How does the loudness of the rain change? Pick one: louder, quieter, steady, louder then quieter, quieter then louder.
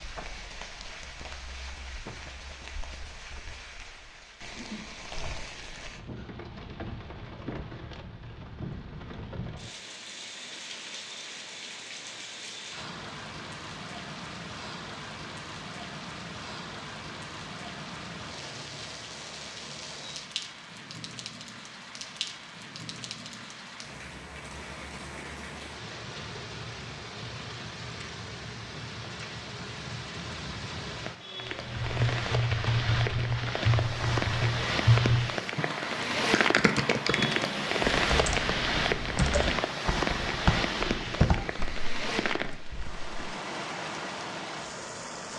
louder.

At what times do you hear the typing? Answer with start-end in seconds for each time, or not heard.
31.4-43.1.